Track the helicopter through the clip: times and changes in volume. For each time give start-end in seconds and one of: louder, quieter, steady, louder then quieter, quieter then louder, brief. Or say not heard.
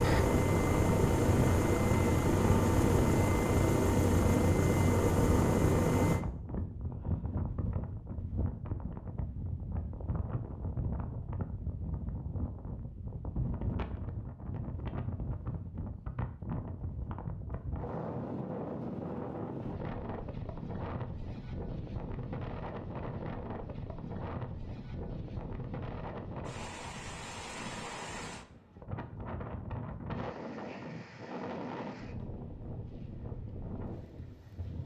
0.0-6.2 steady.